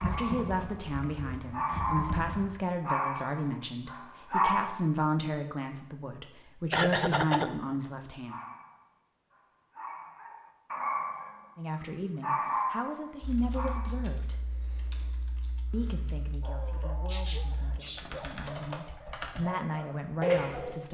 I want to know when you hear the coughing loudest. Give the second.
7 s.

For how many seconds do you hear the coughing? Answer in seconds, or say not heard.
2 s.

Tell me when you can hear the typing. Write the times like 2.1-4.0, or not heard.
0.0-2.5, 13.2-19.4.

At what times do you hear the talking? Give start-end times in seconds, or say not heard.
0.1-8.3, 11.6-14.3, 15.7-20.8.